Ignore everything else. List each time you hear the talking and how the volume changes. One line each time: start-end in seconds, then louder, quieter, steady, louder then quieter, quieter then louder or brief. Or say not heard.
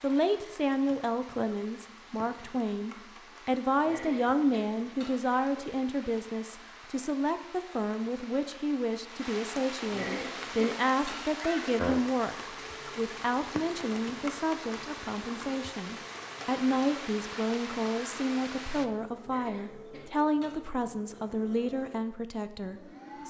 0.0-23.2 steady.